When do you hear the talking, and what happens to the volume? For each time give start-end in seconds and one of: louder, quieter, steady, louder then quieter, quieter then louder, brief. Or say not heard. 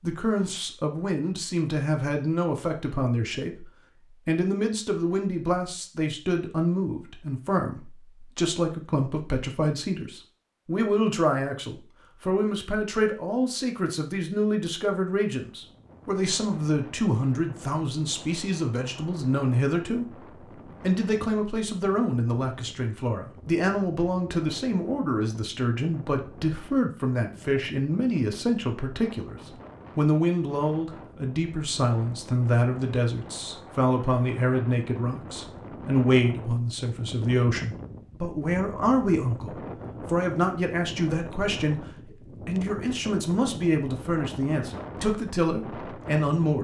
0.0-46.5 steady.